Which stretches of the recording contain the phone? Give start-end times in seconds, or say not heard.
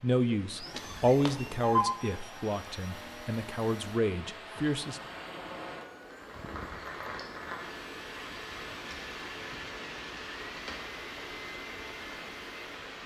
0.7-1.9.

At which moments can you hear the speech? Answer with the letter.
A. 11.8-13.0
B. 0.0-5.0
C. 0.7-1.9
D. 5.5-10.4
B.